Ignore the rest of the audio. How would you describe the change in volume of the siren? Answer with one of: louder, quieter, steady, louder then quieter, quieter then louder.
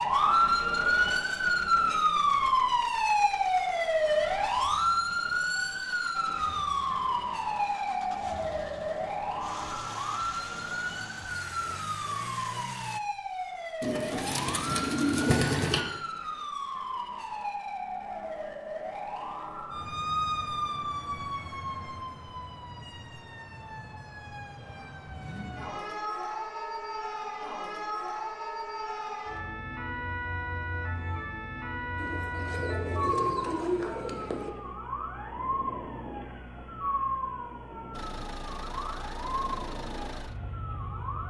quieter.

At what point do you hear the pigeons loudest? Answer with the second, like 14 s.
15 s.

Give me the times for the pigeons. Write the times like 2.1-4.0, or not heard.
13.8-15.8, 31.9-34.5.